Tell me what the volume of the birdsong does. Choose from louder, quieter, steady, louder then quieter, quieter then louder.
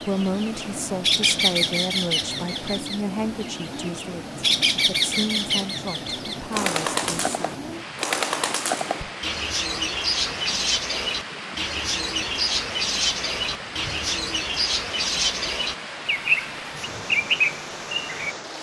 steady.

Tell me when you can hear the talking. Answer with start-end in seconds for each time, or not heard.
0.1-7.7.